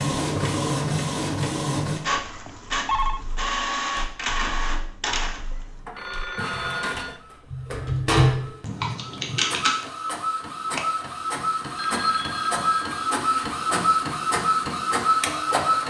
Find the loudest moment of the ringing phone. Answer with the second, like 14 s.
3 s.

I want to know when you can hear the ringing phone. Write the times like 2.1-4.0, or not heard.
2.2-3.2, 5.5-7.2, 11.8-13.1.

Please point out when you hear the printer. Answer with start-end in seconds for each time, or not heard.
0.0-15.8.